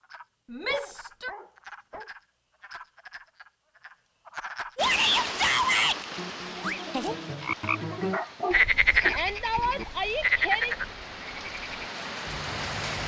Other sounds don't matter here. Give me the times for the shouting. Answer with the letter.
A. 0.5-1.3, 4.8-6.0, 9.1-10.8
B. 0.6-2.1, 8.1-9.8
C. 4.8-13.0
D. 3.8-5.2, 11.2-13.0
A.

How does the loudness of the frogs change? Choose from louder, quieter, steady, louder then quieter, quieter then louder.
louder then quieter.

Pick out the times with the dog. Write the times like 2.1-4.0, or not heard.
0.6-2.1, 8.1-9.8.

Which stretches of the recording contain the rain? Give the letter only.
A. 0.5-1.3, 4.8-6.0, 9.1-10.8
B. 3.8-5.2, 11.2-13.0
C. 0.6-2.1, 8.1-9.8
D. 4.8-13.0
D.